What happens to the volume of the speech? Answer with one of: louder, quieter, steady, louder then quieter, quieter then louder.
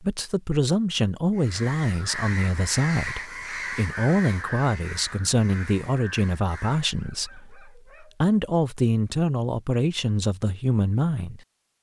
steady.